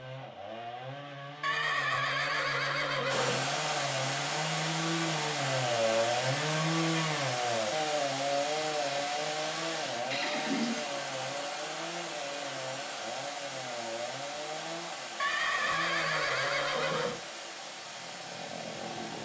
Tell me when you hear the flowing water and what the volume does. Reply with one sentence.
The flowing water can be heard from 3.0 to 19.1 s, getting quieter.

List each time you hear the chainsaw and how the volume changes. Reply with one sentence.
You can hear the chainsaw from 0.0 to 19.1 s, getting louder then quieter.